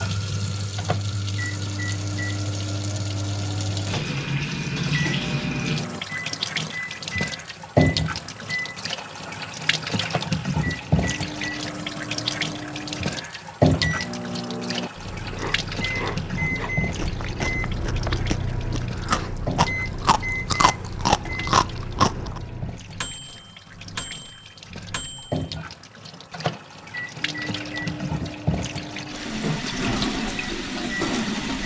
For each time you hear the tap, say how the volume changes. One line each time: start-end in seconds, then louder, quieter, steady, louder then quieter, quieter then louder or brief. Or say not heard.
0.0-31.6 quieter then louder.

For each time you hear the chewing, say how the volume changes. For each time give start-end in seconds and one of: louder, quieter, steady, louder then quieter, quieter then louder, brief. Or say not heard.
15.1-22.4 louder.